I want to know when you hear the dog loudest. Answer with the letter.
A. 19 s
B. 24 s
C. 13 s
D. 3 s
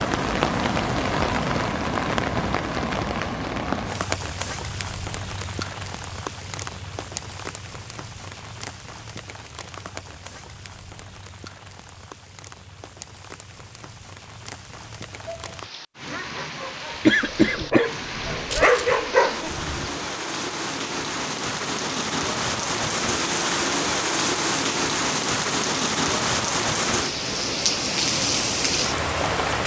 A.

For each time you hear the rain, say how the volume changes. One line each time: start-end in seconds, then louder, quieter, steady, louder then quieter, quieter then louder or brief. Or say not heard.
0.0-29.6 quieter then louder.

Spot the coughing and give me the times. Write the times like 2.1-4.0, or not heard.
17.1-18.9.